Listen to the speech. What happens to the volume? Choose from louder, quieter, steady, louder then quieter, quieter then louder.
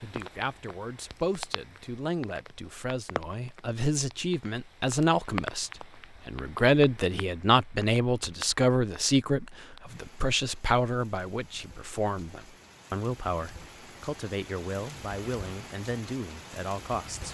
louder then quieter.